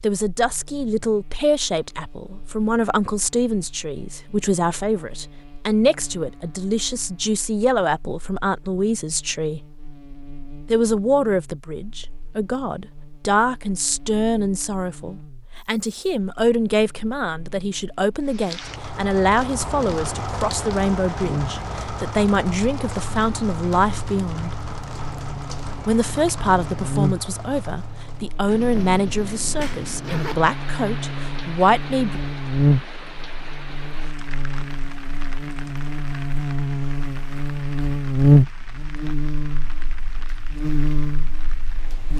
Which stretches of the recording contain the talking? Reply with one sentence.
You can hear the talking from 0.0 to 9.7 s, from 10.7 to 24.6 s and from 25.9 to 32.2 s.